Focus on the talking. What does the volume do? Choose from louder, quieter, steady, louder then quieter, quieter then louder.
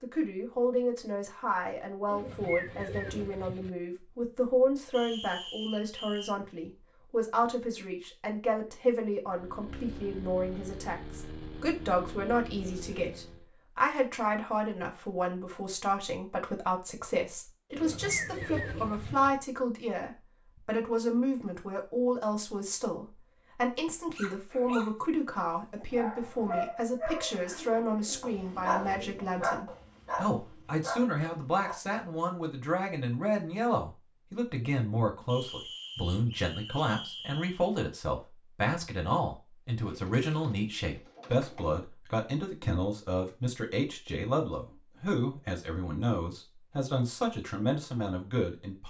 steady.